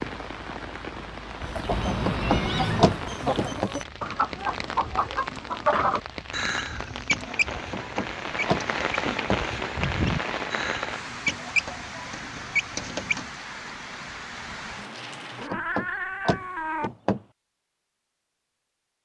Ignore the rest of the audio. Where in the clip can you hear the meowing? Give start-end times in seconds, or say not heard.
1.7-3.1, 15.3-16.9.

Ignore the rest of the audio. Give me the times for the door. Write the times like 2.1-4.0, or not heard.
2.0-3.7, 7.7-9.4, 15.5-17.2.